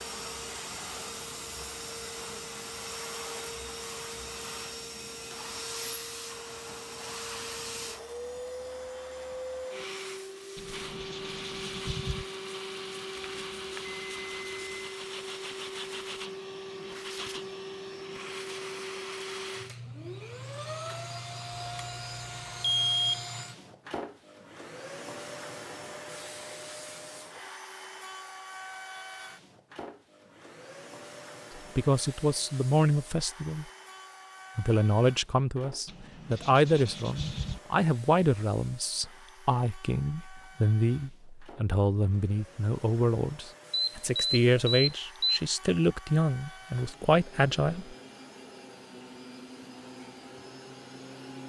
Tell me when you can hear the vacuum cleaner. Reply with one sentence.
The vacuum cleaner can be heard from 0.0 to 51.4 s.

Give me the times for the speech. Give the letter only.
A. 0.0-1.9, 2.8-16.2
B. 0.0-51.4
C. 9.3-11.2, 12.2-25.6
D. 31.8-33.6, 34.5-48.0
D.